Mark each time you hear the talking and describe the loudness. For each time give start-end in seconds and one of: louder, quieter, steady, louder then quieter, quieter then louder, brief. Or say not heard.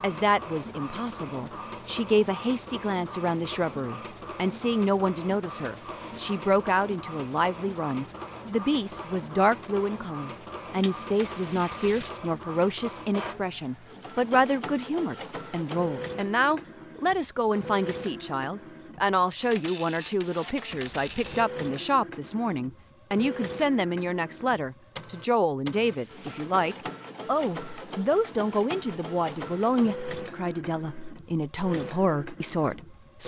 0.0-33.2 steady.